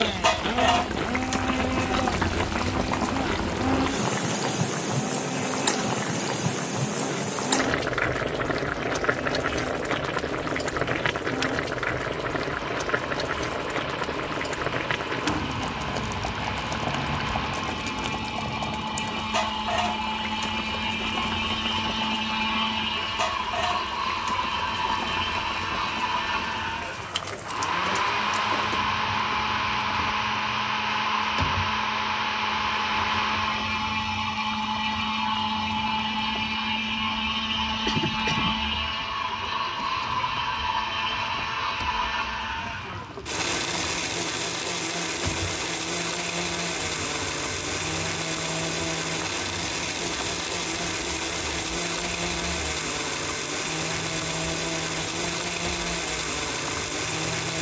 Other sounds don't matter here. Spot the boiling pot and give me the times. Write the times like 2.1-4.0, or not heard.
0.0-57.5.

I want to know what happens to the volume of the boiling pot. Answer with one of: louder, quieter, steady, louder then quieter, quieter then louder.
quieter.